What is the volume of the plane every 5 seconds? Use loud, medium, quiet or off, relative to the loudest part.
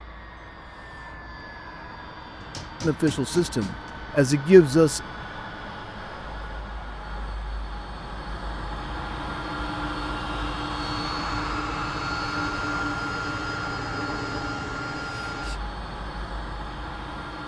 medium, medium, loud, medium.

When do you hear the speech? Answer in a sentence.
The speech can be heard from 2.8 to 5.0 s.